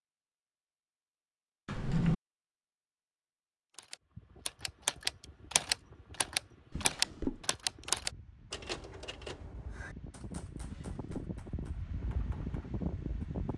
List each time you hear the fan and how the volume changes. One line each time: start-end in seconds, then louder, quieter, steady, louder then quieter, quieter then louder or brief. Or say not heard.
4.0-13.5 louder.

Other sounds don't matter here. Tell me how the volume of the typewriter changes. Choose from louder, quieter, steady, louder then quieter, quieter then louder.
quieter.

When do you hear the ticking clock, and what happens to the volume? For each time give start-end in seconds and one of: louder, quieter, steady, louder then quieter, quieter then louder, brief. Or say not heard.
not heard.